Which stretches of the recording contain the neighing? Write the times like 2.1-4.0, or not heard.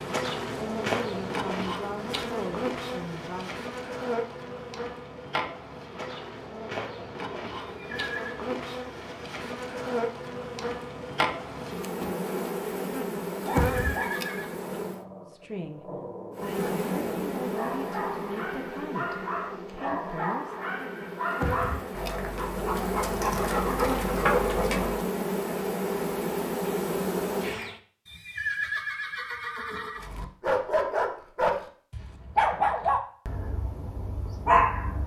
7.6-8.4, 13.7-14.6, 28.1-30.1.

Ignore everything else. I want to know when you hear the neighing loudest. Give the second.
29 s.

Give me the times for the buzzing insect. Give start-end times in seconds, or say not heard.
0.0-15.1, 16.4-27.8.